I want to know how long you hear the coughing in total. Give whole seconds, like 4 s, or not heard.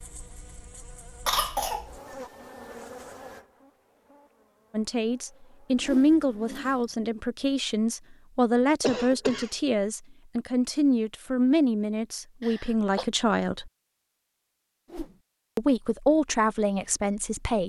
2 s.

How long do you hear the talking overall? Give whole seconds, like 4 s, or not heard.
11 s.